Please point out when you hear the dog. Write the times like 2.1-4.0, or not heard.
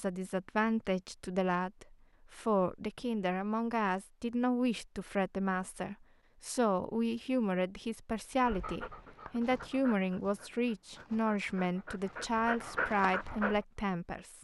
8.4-13.6.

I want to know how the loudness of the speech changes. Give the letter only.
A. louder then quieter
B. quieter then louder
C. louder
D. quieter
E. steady
E.